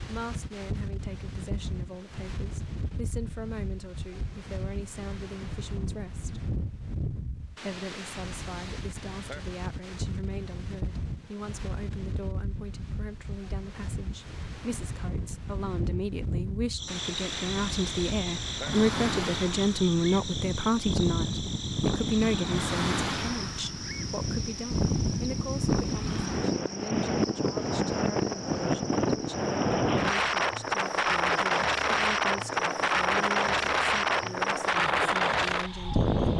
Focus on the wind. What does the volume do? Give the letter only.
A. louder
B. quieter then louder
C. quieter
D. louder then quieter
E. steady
A.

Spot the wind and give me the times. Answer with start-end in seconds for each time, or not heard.
0.0-36.3.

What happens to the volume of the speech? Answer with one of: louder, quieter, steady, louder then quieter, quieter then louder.
louder then quieter.